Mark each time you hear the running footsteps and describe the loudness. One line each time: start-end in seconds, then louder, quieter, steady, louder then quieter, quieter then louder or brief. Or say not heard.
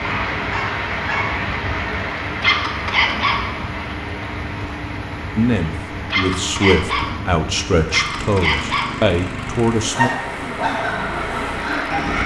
not heard.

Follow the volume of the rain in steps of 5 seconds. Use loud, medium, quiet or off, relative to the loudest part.
loud, medium, loud.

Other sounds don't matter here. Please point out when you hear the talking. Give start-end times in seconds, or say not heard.
5.3-10.1.